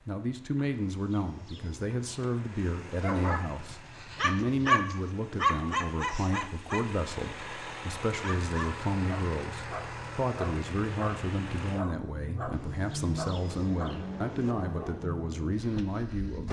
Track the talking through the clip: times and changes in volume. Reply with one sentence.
The talking can be heard from 0.1 to 16.4 s, at a steady volume.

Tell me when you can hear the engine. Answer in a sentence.
You can hear the engine from 0.0 to 16.4 s.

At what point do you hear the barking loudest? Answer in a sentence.
The loudest moment of the barking is at 5 seconds.